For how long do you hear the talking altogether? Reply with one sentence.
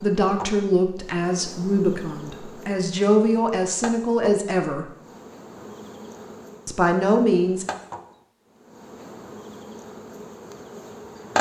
The talking can be heard for 6 seconds in total.